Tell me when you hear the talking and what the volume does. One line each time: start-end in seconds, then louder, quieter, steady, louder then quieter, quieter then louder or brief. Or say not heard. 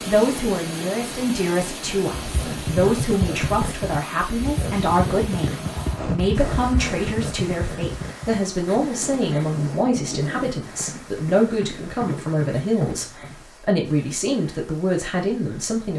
0.1-15.9 steady.